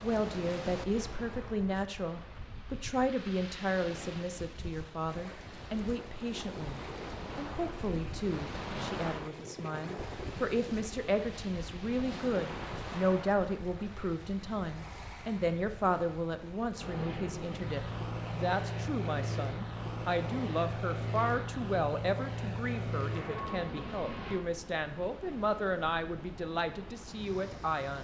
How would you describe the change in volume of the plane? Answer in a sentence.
The loudness of the plane stays about the same.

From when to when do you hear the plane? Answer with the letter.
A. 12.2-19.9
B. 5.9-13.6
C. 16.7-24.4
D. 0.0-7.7
C.